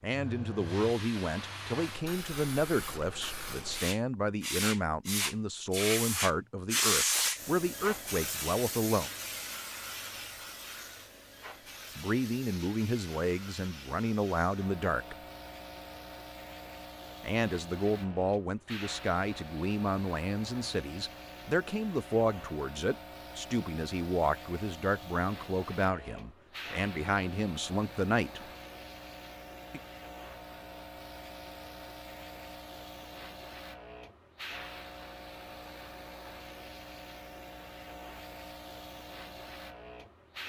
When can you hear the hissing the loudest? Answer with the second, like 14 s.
7 s.